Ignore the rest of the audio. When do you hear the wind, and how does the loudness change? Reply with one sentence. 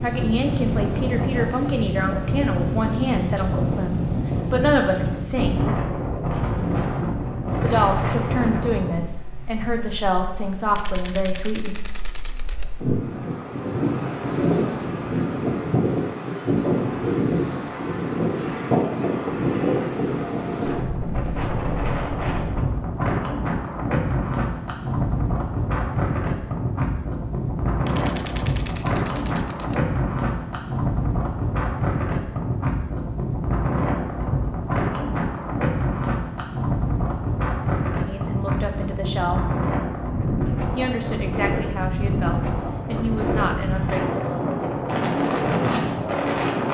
The wind can be heard from 0.0 to 46.6 s, at a steady volume.